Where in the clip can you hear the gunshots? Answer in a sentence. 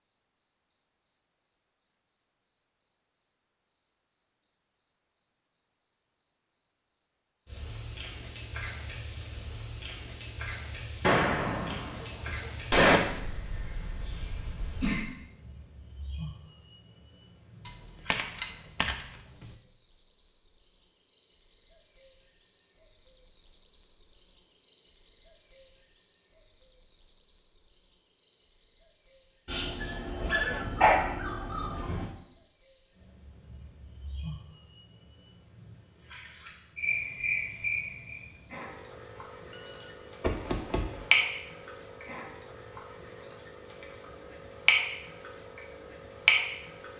You can hear the gunshots from 11.0 to 13.0 s, from 18.1 to 18.9 s and from 39.5 to 41.0 s.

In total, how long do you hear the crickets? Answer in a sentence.
You can hear the crickets for 47 seconds altogether.